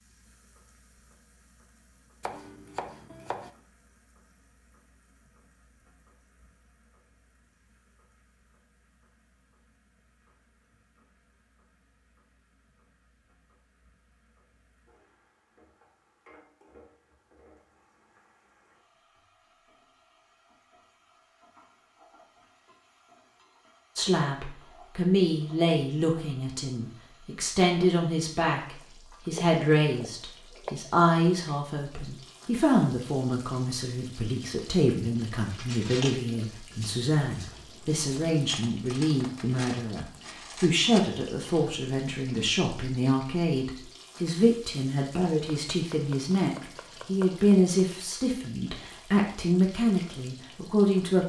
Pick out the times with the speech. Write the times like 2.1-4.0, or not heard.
23.9-51.2.